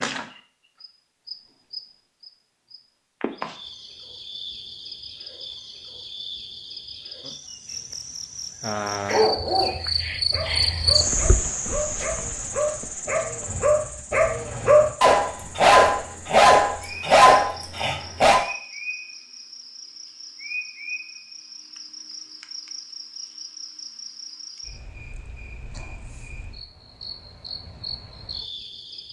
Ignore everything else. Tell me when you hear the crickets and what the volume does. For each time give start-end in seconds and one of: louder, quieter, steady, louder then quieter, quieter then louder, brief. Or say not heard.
0.0-29.0 louder then quieter.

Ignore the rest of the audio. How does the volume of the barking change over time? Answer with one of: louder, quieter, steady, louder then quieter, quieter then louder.
louder.